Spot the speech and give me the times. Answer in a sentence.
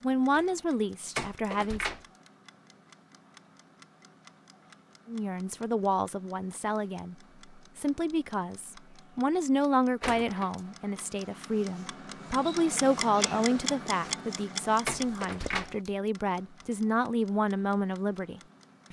You can hear the speech from 0.0 to 1.9 s and from 5.0 to 18.8 s.